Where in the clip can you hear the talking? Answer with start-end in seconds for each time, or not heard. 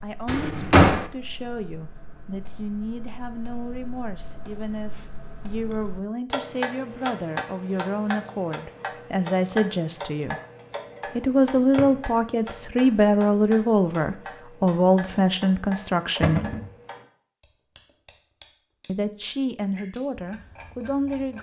0.0-10.3, 11.2-16.4, 18.9-21.3.